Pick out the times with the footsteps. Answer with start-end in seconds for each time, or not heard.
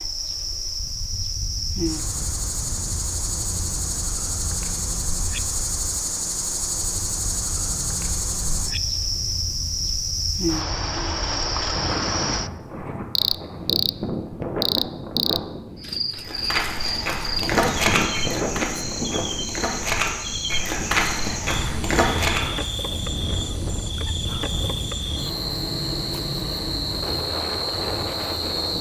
16.1-22.6.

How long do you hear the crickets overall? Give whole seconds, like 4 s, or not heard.
29 s.